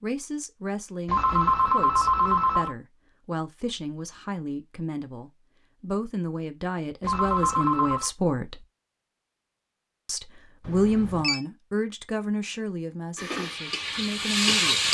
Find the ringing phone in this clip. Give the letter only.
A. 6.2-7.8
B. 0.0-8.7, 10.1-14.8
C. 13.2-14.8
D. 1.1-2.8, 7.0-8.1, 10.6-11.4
D.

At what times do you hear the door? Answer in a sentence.
The door can't be heard in this clip.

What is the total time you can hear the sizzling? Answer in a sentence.
You can hear the sizzling for 2 seconds altogether.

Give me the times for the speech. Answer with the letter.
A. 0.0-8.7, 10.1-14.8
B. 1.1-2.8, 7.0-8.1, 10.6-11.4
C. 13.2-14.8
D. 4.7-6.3
A.